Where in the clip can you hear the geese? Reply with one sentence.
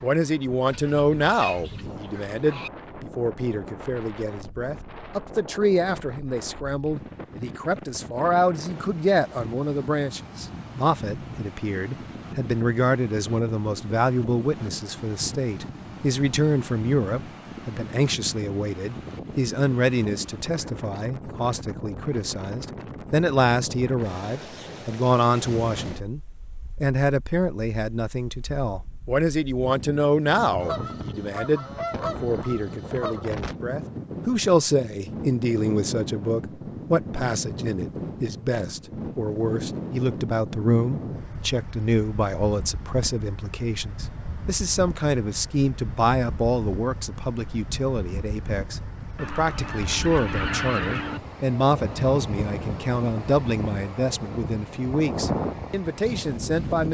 The geese can be heard from 0.7 to 2.7 s, from 30.6 to 33.2 s and from 49.1 to 51.2 s.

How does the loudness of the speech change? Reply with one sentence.
The volume of the speech stays about the same.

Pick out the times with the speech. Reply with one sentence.
The speech can be heard from 0.0 to 26.2 s and from 26.8 to 56.9 s.